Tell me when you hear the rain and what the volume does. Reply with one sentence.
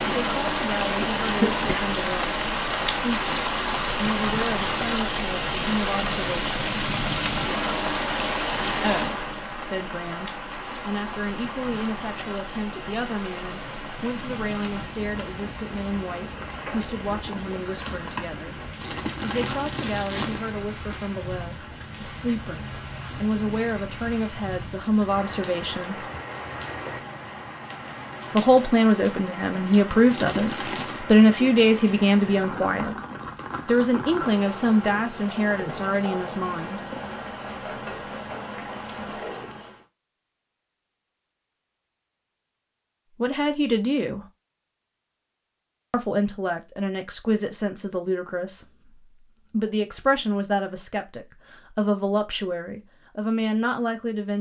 You can hear the rain from 0.0 to 39.9 s, getting quieter.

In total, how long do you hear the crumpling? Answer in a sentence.
The crumpling can be heard for 3 seconds in total.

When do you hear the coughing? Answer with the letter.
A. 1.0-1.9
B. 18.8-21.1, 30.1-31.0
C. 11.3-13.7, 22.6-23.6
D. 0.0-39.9
A.